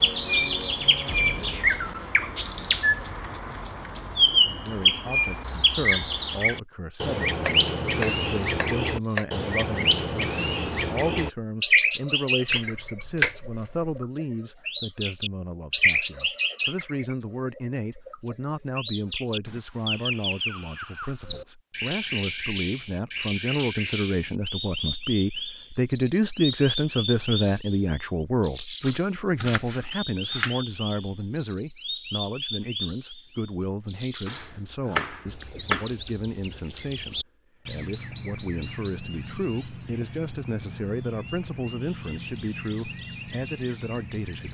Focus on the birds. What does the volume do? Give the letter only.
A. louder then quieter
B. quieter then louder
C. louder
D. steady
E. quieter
E.